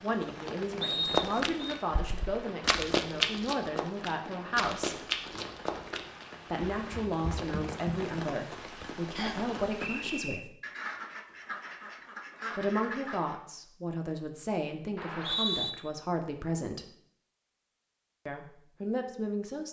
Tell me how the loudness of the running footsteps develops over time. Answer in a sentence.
The volume of the running footsteps goes up, then down.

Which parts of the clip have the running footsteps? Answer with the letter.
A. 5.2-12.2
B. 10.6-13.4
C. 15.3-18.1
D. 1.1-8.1
D.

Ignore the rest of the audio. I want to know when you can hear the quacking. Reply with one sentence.
You can hear the quacking from 10.6 to 13.4 s.